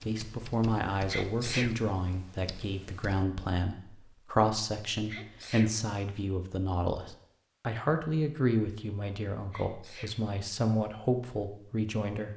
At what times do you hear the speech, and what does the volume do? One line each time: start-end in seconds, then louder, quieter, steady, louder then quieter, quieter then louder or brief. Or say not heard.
0.1-12.3 steady.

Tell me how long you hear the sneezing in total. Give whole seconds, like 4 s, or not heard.
2 s.